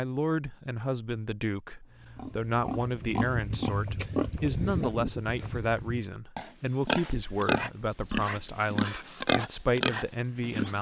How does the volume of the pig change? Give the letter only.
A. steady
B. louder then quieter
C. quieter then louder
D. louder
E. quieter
D.